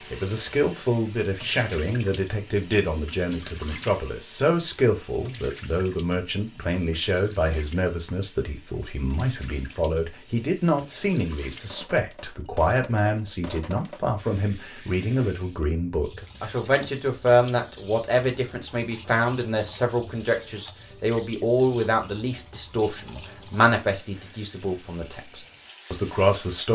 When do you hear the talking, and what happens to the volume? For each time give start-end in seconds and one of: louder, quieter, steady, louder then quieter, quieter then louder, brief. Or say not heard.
0.1-26.6 steady.